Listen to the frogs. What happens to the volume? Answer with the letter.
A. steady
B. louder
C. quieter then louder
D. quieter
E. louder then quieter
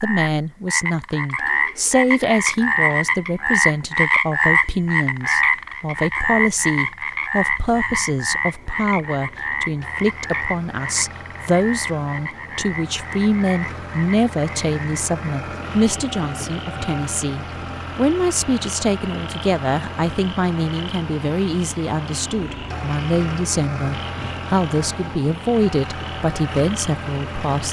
D.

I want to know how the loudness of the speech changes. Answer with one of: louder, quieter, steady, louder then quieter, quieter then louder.
steady.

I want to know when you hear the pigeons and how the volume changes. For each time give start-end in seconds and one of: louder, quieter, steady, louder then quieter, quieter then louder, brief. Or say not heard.
not heard.